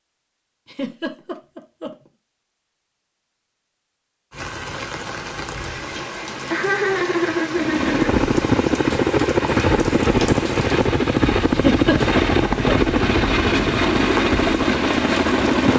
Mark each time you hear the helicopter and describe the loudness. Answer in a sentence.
The helicopter can be heard from 7.5 to 15.7 s, at a steady volume.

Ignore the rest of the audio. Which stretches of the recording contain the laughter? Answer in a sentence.
You can hear the laughter from 0.7 to 1.9 s, from 6.5 to 8.2 s and from 11.5 to 12.9 s.